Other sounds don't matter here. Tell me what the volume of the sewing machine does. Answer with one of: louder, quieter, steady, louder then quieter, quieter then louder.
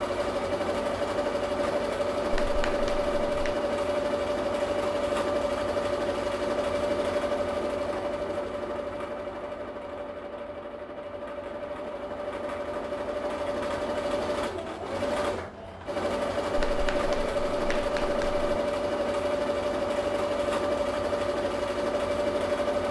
quieter then louder.